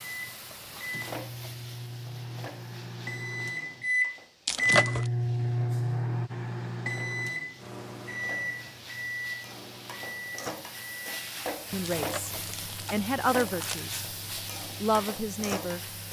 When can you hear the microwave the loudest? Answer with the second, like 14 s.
5 s.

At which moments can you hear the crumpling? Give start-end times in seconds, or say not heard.
4.5-5.1, 11.8-13.8.